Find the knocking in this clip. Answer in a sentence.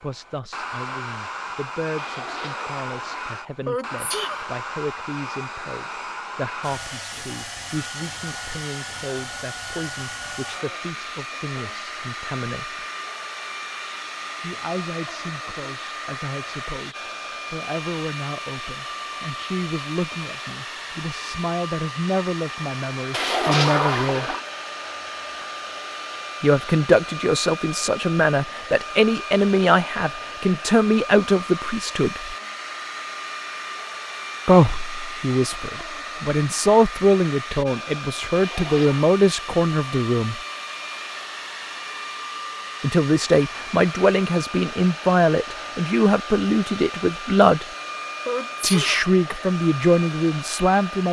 You can't hear the knocking here.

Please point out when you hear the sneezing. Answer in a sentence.
The sneezing can be heard from 3.6 to 4.5 s and from 48.2 to 49.0 s.